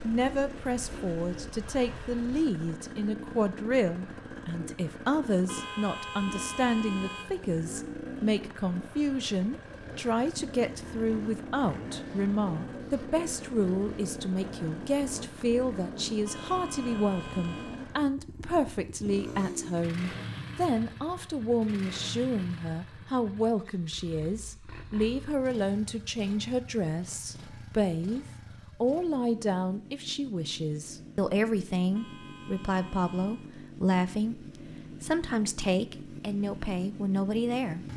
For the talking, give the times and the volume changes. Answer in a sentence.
You can hear the talking from 0.0 to 37.9 s, at a steady volume.